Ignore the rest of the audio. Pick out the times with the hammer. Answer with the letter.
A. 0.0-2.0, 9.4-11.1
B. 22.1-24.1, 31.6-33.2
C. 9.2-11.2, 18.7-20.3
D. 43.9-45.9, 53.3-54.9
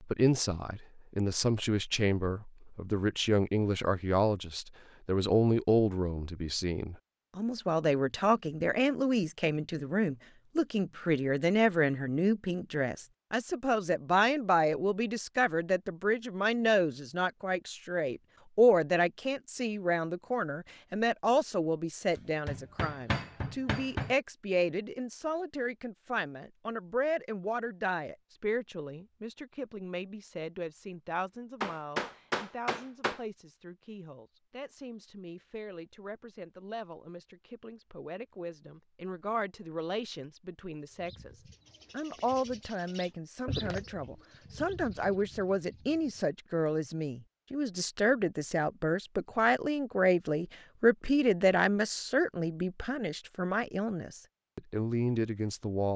B.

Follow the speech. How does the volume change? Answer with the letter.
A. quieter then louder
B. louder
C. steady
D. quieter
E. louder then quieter
A.